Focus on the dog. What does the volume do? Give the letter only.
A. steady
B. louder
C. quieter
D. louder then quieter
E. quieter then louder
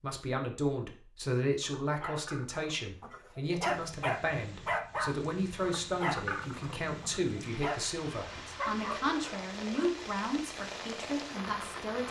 D.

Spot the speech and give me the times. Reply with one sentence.
The speech can be heard from 0.0 to 12.0 s.